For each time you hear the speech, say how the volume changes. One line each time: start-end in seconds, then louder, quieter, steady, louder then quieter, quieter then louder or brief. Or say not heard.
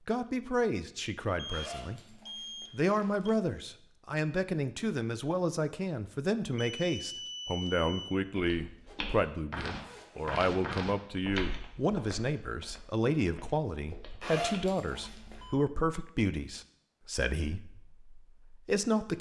0.1-19.1 steady.